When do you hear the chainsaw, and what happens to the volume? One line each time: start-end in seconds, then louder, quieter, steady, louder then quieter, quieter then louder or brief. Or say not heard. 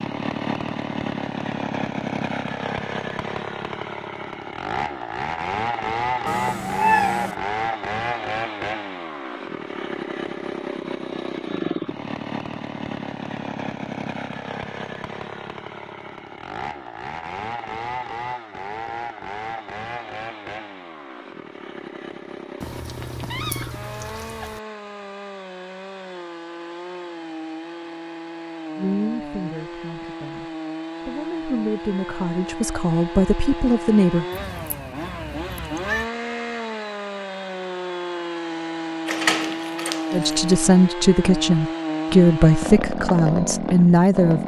0.0-44.4 quieter then louder.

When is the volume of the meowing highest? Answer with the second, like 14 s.
7 s.